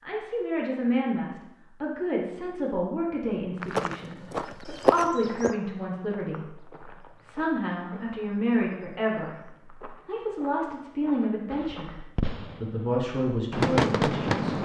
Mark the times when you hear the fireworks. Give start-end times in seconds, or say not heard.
11.5-14.6.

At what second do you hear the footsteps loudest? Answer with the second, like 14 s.
5 s.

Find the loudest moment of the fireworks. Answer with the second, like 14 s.
14 s.